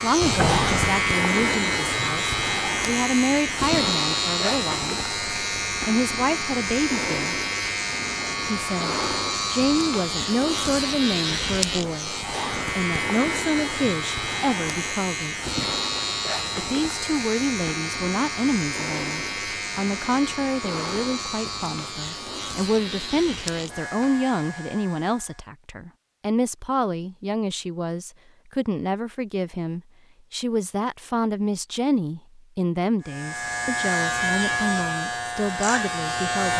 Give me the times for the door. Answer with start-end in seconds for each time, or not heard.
0.2-1.1.